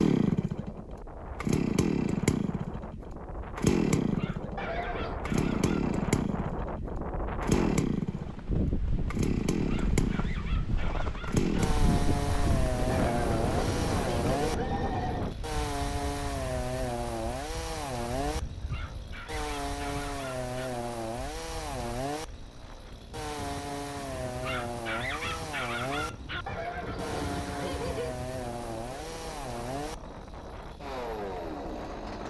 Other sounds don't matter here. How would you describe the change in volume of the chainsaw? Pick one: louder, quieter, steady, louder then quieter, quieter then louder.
quieter.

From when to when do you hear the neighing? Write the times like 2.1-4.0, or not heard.
4.5-5.2, 12.8-15.2, 26.4-28.1.